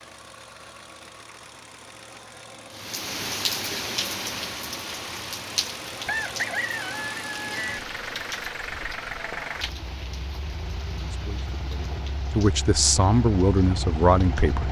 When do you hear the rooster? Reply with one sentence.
The rooster can be heard from 6.0 to 7.8 s.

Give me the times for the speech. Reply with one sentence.
You can hear the speech from 11.0 to 14.6 s.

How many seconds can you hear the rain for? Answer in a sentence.
The rain can be heard for 12 seconds in total.